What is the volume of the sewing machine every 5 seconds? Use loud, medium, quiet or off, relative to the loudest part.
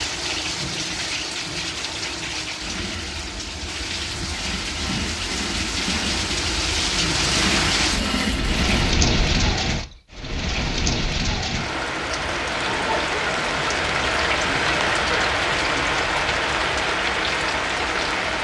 medium, loud, off, off.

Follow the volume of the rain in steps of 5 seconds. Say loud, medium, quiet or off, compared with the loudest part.
medium, loud, loud, loud.